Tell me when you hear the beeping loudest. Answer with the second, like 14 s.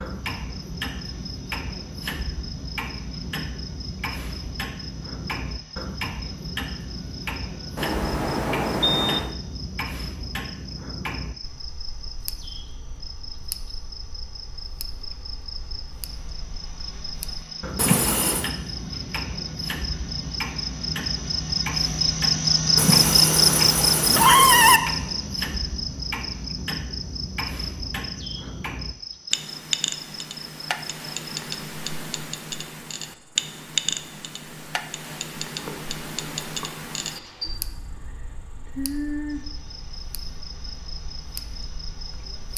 9 s.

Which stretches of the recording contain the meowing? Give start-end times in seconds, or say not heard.
17.8-18.5, 22.8-24.8.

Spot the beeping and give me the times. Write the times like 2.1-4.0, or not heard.
7.8-9.3.